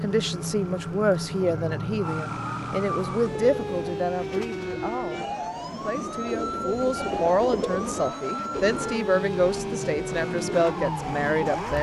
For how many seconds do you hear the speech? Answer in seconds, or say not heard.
12 s.